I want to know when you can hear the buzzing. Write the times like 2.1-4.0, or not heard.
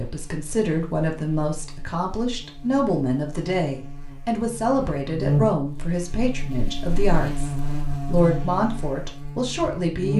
0.0-10.1.